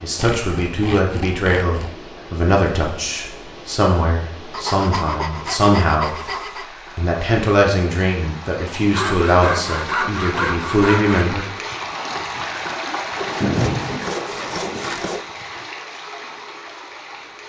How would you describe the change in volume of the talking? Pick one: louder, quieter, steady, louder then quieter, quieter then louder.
steady.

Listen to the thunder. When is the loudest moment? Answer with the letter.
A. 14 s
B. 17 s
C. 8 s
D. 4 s
A.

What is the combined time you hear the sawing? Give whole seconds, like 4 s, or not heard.
8 s.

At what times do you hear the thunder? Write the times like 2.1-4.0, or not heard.
11.7-12.4, 13.2-15.4.